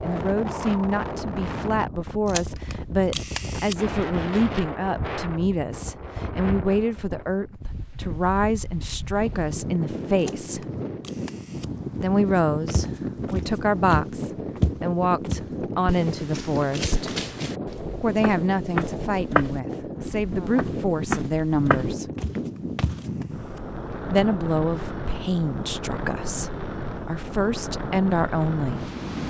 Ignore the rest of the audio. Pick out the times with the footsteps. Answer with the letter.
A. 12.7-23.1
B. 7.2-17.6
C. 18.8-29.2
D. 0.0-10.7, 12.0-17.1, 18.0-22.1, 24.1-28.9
A.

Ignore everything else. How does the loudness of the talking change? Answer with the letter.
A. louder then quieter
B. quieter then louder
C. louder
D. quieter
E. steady
E.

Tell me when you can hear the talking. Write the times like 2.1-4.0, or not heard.
0.0-10.7, 12.0-17.1, 18.0-22.1, 24.1-28.9.